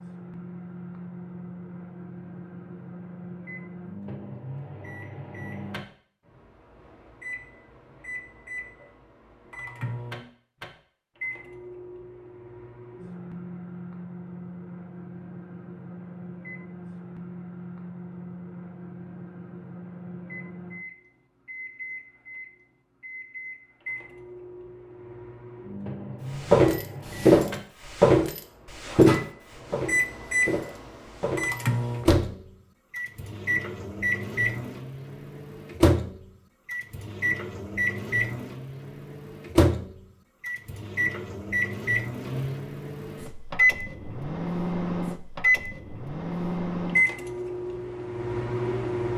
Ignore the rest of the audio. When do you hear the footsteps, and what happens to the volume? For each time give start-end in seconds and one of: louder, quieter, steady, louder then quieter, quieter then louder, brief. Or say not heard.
26.4-32.3 quieter.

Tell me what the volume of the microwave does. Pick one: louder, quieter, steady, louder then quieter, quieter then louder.
louder.